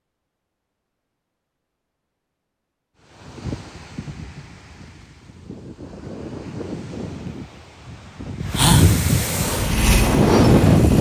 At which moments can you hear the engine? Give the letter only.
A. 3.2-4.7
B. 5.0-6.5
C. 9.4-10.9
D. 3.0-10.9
C.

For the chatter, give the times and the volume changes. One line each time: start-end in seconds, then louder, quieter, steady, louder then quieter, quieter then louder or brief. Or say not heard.
not heard.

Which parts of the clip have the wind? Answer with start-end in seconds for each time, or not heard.
3.0-10.9.